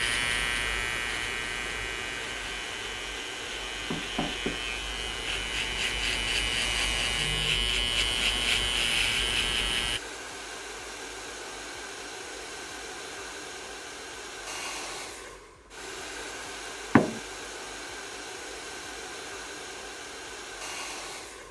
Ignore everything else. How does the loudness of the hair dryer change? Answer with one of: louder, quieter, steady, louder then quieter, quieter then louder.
steady.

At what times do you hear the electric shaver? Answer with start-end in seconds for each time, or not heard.
0.0-10.0.